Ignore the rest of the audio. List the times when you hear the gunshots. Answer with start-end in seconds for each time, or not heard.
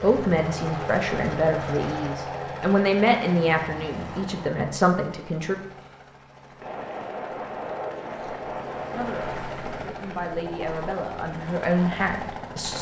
6.6-9.7.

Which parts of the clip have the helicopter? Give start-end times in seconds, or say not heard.
0.0-12.7.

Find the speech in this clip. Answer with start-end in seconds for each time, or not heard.
0.0-5.5, 8.9-12.7.